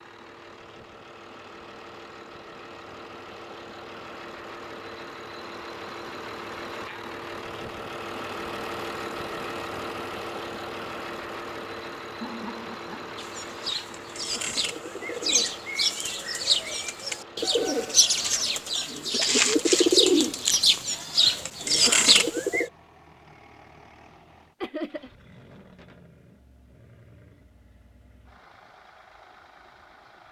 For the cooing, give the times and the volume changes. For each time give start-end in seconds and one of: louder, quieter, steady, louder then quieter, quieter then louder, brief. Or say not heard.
13.2-22.7 louder.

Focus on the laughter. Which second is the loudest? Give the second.
25 s.